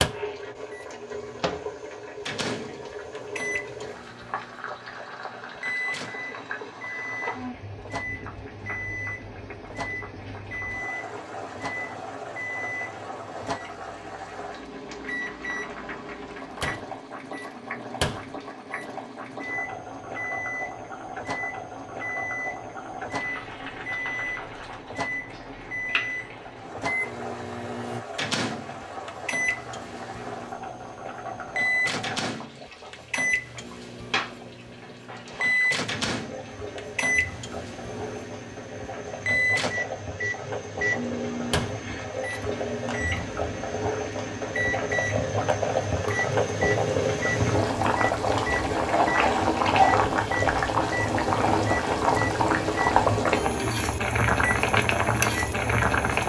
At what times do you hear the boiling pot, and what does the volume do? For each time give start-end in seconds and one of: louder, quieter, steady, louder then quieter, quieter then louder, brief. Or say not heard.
0.0-56.2 louder.